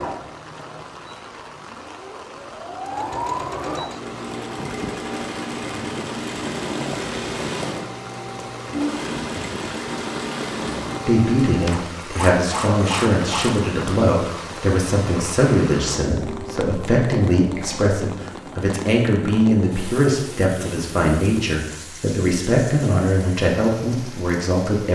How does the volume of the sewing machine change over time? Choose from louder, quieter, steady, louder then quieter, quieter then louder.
louder.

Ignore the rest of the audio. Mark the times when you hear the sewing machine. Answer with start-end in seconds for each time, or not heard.
0.0-13.7.